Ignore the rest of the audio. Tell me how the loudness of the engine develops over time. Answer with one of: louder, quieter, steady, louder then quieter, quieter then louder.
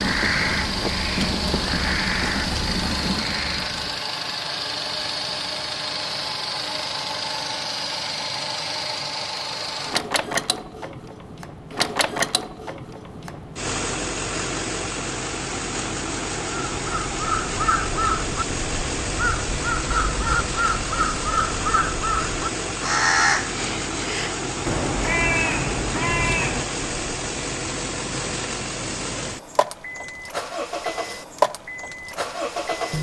steady.